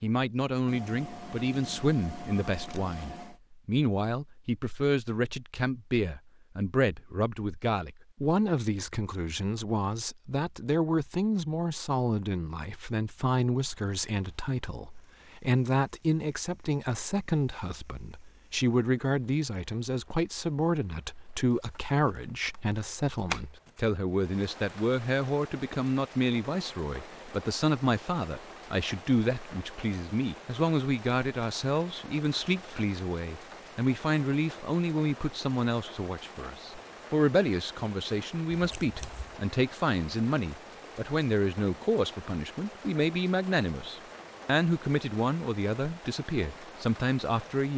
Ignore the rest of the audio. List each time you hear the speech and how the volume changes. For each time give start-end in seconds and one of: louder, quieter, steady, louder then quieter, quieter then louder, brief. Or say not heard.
0.0-47.7 steady.